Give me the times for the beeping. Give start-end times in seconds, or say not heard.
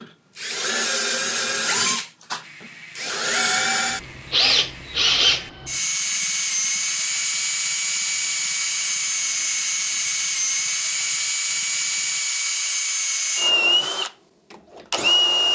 not heard.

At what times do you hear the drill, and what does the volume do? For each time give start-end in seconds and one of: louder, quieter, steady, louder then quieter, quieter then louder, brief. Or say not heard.
0.0-15.4 steady.